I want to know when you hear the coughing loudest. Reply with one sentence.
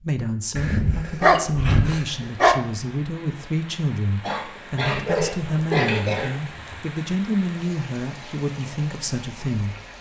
The loudest moment of the coughing is at 6 seconds.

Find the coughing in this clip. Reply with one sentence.
You can hear the coughing from 4.2 to 6.3 s.